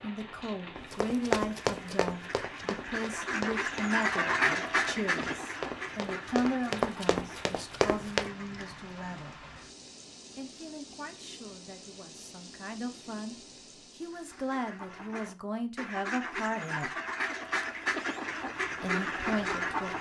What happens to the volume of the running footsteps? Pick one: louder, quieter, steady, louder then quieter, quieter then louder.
quieter then louder.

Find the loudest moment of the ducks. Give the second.
4 s.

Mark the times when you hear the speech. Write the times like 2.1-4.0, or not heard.
0.0-9.3, 10.3-13.3, 13.9-16.9, 18.8-19.9.